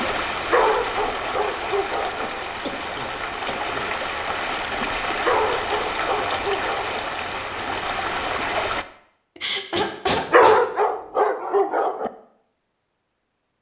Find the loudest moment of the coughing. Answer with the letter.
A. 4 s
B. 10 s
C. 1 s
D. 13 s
B.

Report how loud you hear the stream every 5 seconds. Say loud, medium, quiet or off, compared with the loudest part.
loud, loud, off.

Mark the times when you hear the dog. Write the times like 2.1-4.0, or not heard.
0.5-2.3, 5.2-7.0, 10.3-12.1.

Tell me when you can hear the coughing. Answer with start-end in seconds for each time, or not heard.
2.6-3.9, 9.3-10.6.